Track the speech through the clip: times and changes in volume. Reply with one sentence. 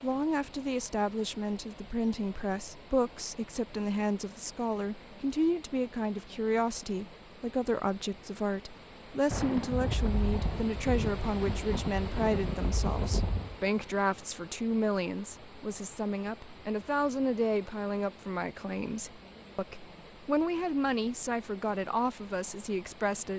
The speech can be heard from 0.0 to 23.3 s, at a steady volume.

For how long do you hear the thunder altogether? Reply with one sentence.
You can hear the thunder for 4 seconds altogether.